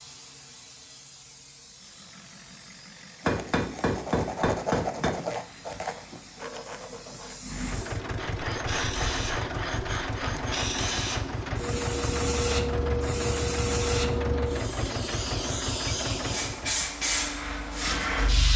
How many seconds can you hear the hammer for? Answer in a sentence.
The hammer can be heard for 2 seconds in total.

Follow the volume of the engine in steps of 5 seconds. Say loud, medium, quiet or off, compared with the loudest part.
quiet, loud, loud, loud.